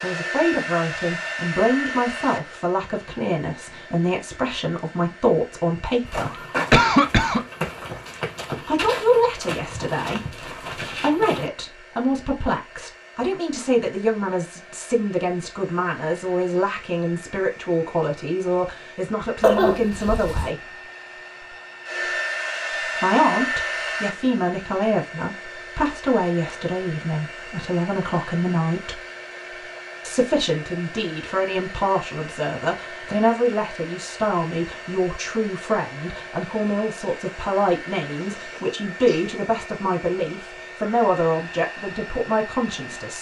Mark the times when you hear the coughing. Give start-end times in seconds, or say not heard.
6.3-7.5, 19.4-20.5, 38.2-39.2.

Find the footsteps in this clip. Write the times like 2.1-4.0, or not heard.
6.0-11.5.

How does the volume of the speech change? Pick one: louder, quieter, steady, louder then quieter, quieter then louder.
steady.